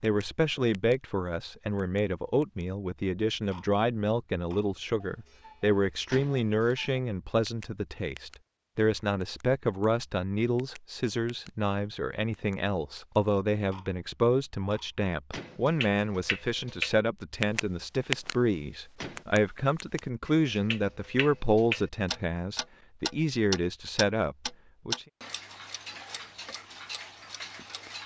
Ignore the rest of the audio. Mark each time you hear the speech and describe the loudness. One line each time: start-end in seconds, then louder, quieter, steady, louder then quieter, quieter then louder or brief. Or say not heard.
0.0-25.1 steady.